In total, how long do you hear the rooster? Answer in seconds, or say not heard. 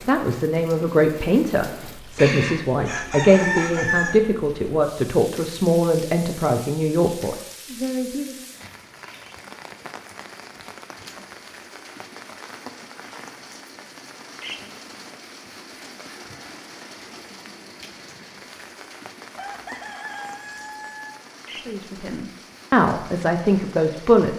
4 s.